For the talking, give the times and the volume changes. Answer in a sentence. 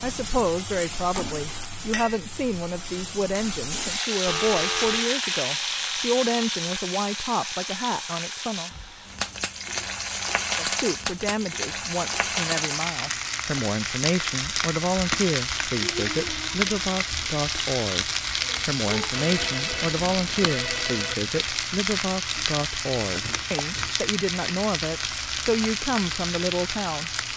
The talking can be heard from 0.0 to 8.7 s, at a steady volume; and from 10.6 to 27.1 s, at a steady volume.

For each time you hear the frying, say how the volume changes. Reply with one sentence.
You can hear the frying from 0.0 to 27.3 s, at a steady volume.